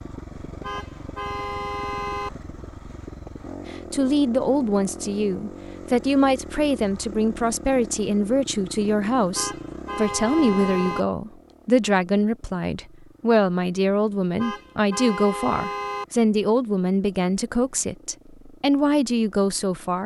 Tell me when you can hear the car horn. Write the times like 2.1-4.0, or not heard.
0.6-2.3, 9.3-11.1, 14.3-16.1.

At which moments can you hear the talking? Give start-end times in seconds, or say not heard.
3.7-20.0.